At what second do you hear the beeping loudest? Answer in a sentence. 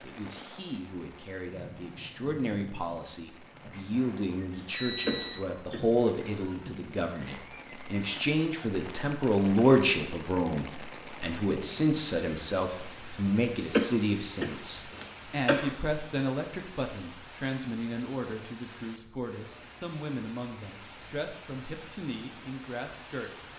The volume of the beeping peaks at 5 seconds.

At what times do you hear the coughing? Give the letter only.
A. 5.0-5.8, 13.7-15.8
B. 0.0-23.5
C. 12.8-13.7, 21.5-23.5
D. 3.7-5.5
A.